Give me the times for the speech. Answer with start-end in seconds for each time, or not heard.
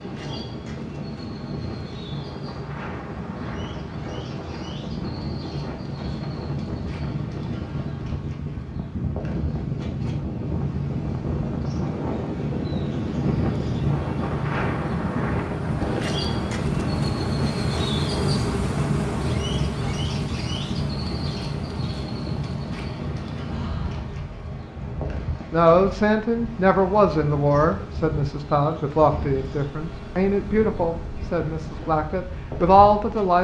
25.5-33.3.